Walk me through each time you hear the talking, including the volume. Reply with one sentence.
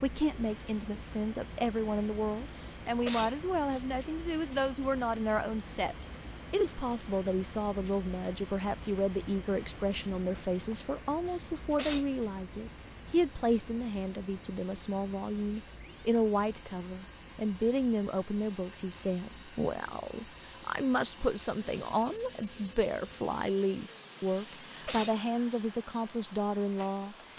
You can hear the talking from 0.0 to 27.1 s, at a steady volume.